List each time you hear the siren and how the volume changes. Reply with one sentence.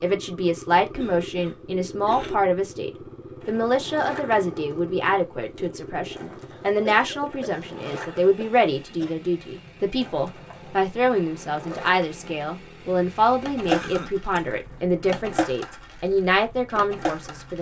The siren can't be heard in this clip.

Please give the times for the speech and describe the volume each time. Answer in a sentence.
The speech can be heard from 0.0 to 17.5 s, at a steady volume.